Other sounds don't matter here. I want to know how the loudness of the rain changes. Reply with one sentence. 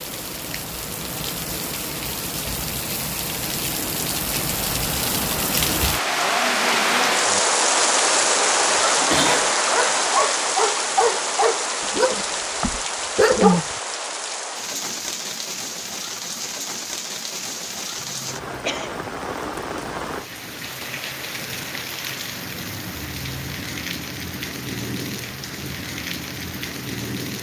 The volume of the rain goes up, then down.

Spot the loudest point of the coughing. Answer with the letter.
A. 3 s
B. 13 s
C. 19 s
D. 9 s
D.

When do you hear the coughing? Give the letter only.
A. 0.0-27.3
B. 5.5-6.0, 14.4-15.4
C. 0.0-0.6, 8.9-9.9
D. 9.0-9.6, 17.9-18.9
D.